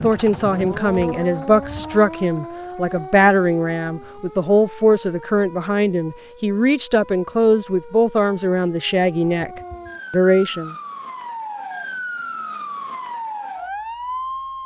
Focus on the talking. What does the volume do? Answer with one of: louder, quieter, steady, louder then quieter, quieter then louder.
steady.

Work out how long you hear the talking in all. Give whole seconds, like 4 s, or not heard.
11 s.